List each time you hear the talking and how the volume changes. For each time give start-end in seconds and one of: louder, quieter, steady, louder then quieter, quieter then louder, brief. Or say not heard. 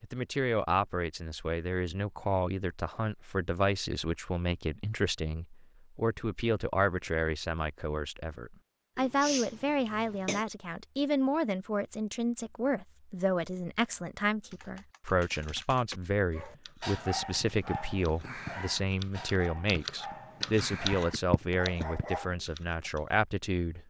0.0-23.8 steady.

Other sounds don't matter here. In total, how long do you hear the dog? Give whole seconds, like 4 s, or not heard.
6 s.